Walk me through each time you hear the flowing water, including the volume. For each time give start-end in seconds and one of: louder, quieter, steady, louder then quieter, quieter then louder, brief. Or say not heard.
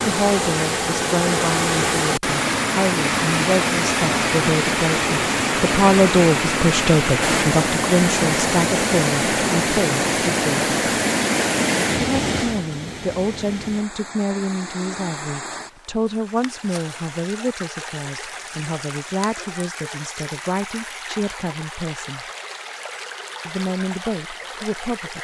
0.0-25.1 quieter.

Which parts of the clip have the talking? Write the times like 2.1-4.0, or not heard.
0.0-10.8, 12.0-22.2, 23.4-25.1.